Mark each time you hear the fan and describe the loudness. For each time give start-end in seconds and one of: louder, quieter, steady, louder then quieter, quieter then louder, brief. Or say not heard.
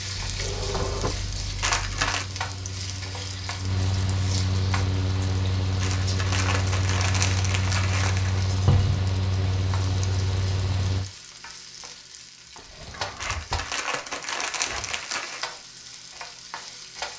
0.0-11.1 louder.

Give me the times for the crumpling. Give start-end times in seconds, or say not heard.
1.6-2.2, 5.8-8.4, 13.2-15.5.